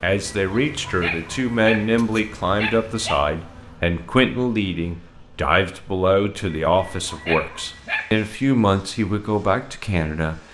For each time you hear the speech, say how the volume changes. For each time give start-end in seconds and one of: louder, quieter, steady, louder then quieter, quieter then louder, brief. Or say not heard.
0.0-10.4 steady.